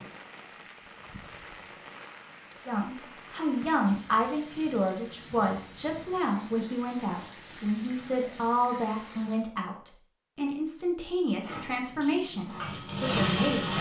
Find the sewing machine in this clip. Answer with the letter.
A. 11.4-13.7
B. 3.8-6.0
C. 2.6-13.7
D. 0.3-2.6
A.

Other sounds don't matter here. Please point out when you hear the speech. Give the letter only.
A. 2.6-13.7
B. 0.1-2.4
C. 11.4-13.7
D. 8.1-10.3
A.